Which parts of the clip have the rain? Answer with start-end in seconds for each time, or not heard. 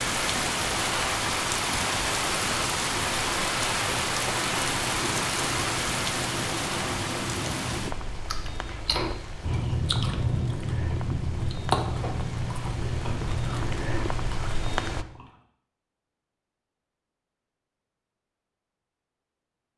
0.0-15.1.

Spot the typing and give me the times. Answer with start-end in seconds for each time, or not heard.
not heard.